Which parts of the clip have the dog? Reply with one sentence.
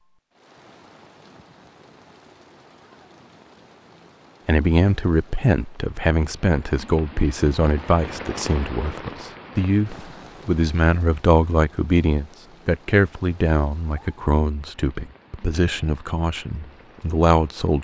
You can't hear the dog here.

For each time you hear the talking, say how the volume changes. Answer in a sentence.
The talking can be heard from 4.5 to 17.8 s, at a steady volume.